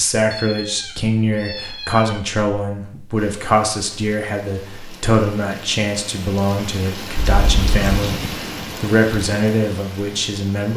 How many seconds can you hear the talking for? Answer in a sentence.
You can hear the talking for 11 seconds altogether.